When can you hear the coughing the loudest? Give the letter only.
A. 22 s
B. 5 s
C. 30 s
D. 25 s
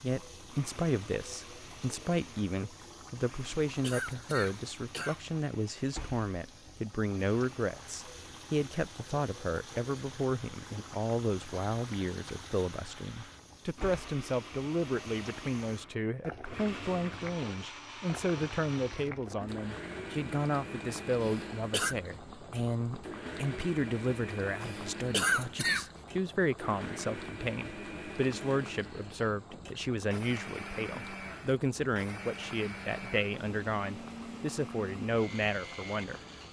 D.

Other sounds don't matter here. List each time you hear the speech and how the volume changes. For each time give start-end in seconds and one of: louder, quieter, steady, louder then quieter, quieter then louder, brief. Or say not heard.
0.0-36.2 steady.